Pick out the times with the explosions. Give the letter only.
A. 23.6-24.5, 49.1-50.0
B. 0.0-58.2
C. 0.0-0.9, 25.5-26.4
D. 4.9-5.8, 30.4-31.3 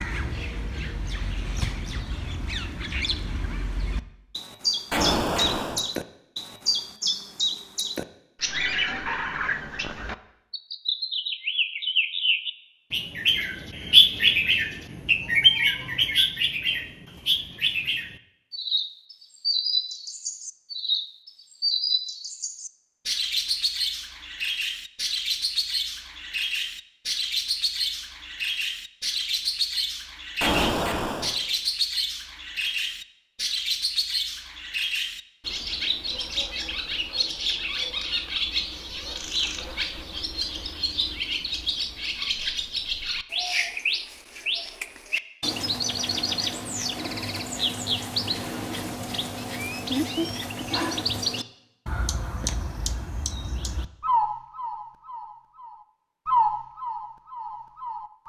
D.